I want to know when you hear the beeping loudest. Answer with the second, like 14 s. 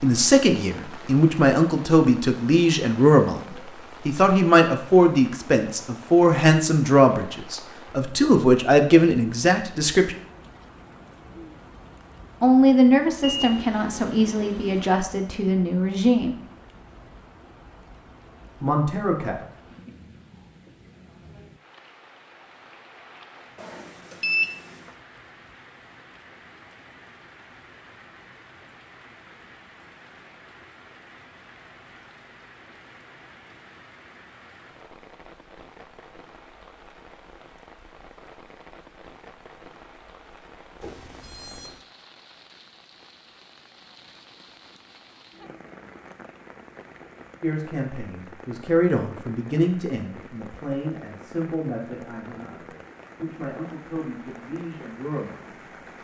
24 s.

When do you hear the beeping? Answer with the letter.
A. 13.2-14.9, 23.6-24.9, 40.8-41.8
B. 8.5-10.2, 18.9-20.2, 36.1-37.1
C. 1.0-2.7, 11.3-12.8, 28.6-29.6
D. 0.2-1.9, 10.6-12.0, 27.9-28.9
A.